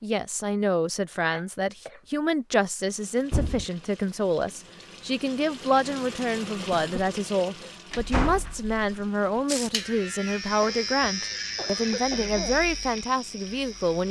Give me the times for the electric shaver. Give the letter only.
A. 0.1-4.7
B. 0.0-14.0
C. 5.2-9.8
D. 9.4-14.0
D.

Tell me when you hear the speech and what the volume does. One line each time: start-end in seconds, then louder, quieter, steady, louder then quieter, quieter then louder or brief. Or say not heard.
0.0-14.0 steady.